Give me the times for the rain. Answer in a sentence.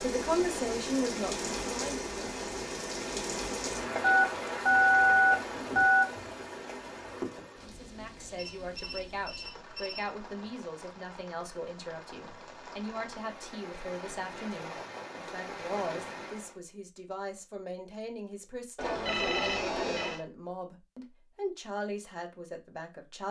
The rain can be heard from 0.0 to 16.6 s.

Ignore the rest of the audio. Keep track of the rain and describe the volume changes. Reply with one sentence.
The volume of the rain goes down, then up.